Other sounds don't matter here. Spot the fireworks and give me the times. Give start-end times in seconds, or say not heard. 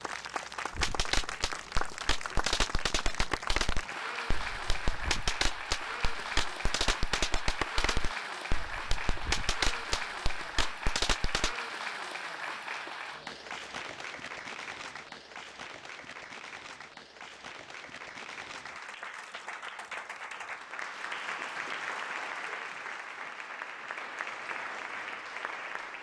0.7-11.6.